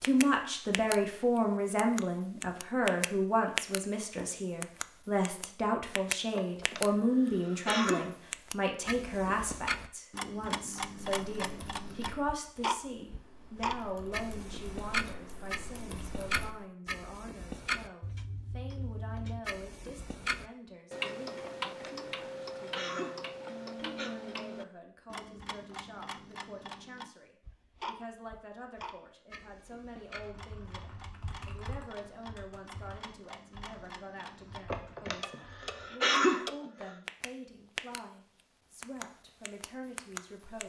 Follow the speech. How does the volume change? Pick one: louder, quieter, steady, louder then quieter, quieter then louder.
quieter.